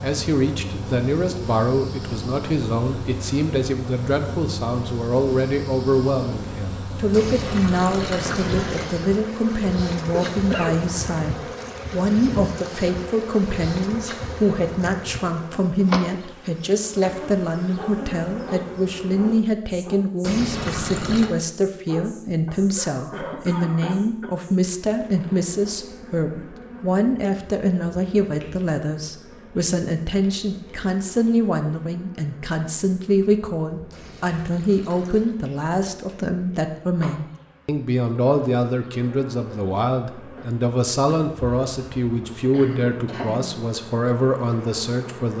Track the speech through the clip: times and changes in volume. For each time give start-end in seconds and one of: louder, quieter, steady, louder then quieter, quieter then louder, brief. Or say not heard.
0.0-45.3 steady.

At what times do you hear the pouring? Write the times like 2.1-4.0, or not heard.
7.1-8.9, 20.2-21.3, 33.9-35.4.